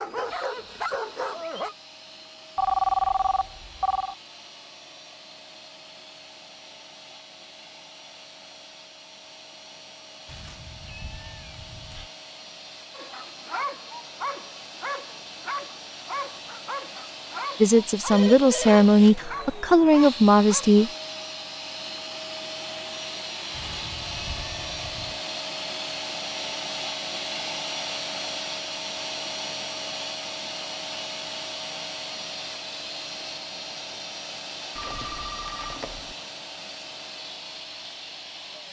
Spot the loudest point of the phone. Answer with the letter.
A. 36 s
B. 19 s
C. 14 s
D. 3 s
D.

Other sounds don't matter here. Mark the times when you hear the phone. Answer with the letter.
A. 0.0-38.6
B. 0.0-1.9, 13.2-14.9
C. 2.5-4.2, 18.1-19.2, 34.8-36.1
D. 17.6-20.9
C.